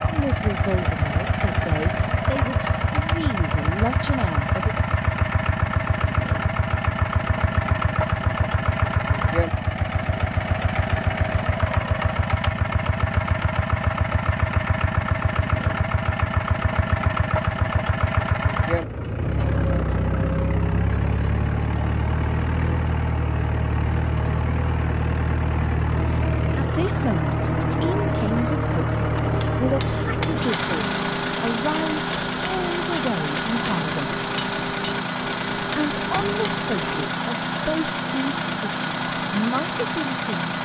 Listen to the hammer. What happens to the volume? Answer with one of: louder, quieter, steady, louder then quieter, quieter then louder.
steady.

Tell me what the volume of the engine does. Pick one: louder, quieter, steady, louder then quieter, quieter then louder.
steady.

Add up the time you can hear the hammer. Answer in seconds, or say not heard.
8 s.